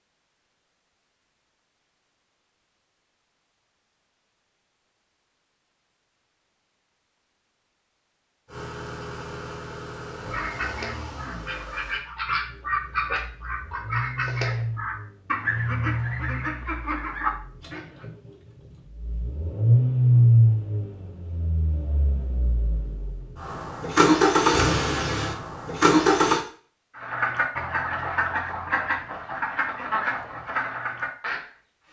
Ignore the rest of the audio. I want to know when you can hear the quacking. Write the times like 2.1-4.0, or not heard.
10.3-18.1, 26.9-31.8.